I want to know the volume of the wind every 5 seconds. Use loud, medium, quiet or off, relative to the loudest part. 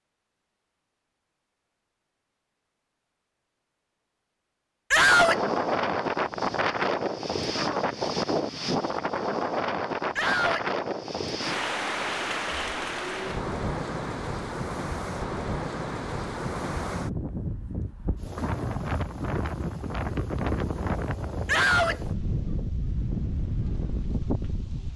off, loud, loud, medium, medium.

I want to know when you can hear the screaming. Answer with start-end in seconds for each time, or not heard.
4.9-5.4, 10.2-10.7, 21.4-22.0.